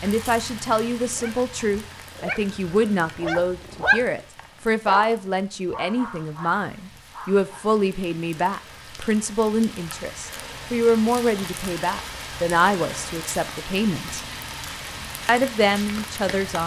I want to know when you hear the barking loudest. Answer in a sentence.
The volume of the barking peaks at 4 seconds.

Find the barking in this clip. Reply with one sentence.
The barking can be heard from 1.0 to 7.7 s.